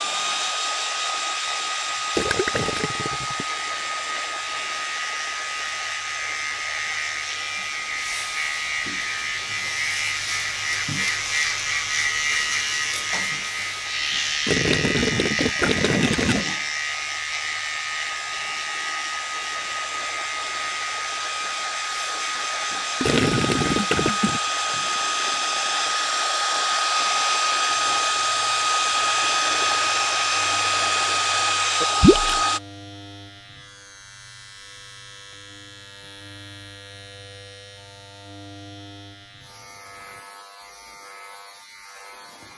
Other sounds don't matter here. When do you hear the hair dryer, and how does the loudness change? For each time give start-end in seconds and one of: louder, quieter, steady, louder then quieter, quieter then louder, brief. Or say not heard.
0.0-32.6 quieter then louder.